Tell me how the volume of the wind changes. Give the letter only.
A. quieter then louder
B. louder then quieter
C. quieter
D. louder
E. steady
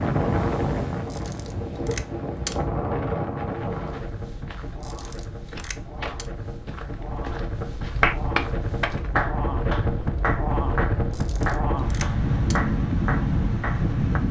A.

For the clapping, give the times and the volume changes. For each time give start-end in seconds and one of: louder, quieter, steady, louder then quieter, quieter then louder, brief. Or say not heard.
6.8-14.2 quieter.